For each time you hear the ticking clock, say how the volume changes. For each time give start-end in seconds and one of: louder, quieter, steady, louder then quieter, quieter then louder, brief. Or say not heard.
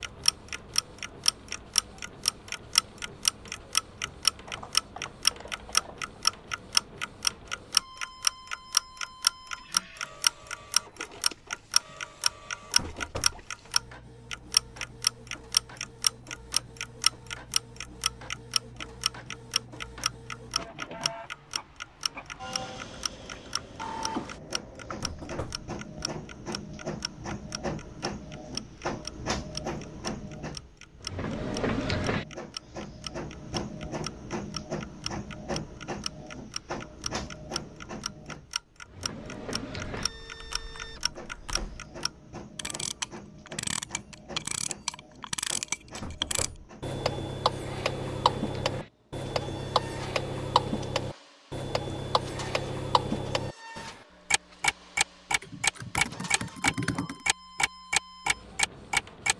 0.0-59.3 quieter then louder.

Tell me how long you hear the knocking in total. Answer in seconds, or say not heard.
2 s.